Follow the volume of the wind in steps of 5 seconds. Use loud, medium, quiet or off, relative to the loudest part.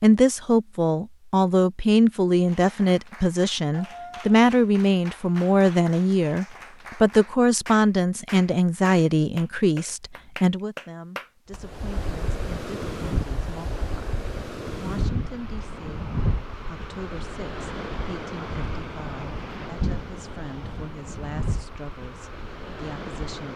off, off, loud, loud, medium.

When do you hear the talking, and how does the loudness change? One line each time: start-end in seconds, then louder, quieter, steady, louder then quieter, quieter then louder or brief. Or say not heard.
0.0-23.5 quieter.